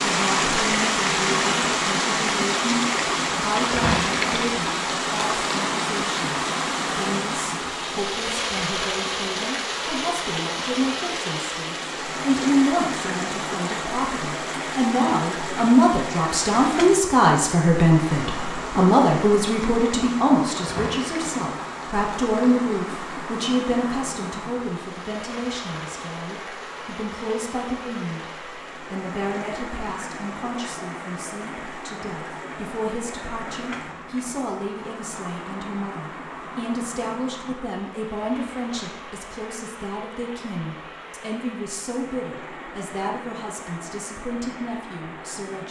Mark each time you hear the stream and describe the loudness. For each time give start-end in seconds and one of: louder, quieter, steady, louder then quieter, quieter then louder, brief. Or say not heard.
0.0-45.6 quieter.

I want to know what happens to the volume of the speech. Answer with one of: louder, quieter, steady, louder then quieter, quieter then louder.
louder then quieter.